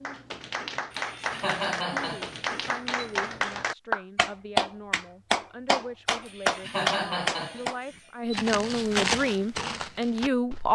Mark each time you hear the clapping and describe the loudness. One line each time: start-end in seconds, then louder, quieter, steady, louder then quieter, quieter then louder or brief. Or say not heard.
0.0-7.8 louder.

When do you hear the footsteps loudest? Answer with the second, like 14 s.
9 s.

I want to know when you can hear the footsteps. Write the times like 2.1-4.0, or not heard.
8.0-10.7.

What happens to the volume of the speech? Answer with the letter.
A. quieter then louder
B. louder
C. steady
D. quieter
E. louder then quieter
B.